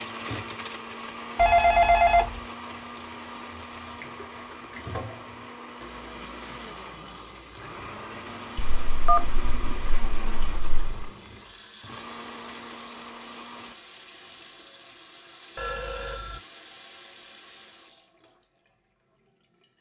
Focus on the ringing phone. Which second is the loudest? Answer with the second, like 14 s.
2 s.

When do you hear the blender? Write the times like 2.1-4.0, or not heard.
0.0-13.8.